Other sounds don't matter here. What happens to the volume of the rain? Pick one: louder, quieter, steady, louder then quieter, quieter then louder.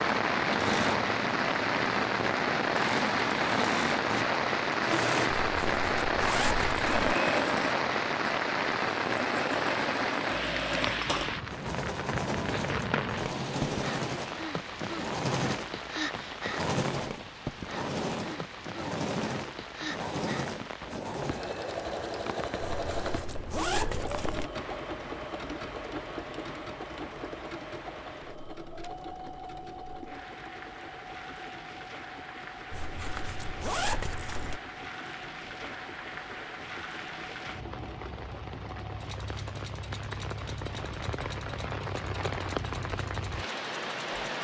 quieter then louder.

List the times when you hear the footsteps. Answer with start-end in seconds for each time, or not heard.
not heard.